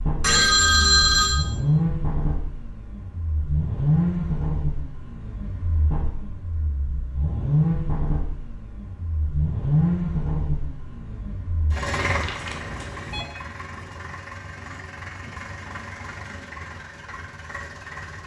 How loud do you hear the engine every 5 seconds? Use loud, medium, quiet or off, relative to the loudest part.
loud, loud, medium, quiet.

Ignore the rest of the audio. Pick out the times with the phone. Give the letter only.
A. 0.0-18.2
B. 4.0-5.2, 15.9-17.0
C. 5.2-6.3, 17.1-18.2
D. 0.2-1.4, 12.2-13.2
D.